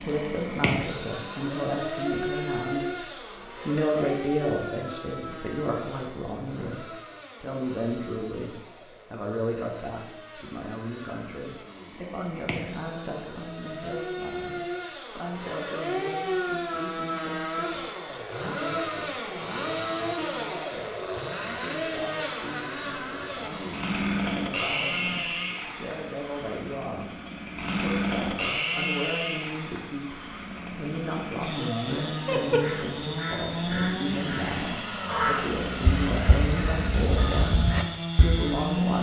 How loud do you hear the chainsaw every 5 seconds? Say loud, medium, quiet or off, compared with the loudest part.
loud, quiet, medium, loud, loud, loud, loud, loud.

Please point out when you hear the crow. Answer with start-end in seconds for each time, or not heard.
32.2-38.8.